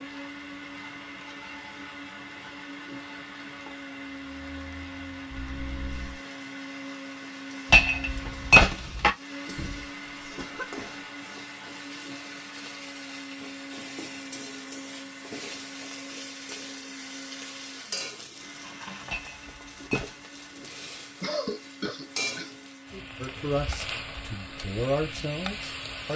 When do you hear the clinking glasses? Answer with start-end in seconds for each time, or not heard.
7.7-9.1, 19.1-20.1.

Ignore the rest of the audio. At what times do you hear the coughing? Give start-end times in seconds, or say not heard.
5.3-6.2, 9.4-11.0, 21.2-22.6.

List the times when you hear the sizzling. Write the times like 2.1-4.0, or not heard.
0.0-26.1.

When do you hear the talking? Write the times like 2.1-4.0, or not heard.
23.2-26.1.